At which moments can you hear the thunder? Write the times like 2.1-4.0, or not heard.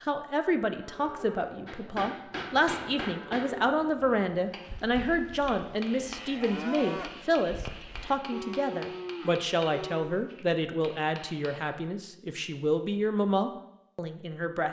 not heard.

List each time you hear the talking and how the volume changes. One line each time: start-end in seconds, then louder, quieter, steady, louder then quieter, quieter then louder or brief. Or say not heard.
0.0-14.6 steady.